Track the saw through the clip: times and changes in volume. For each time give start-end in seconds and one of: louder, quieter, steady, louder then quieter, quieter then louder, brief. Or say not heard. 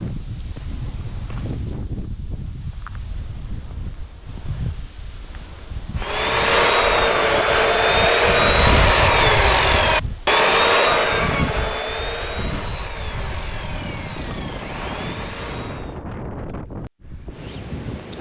6.0-16.1 quieter.